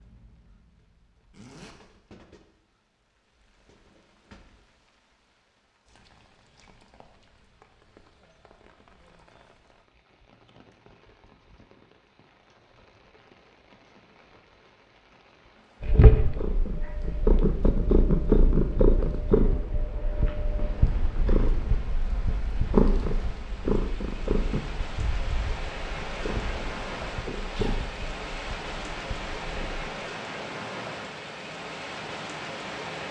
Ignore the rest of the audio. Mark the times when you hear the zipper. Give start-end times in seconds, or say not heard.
1.3-1.8, 27.4-27.9.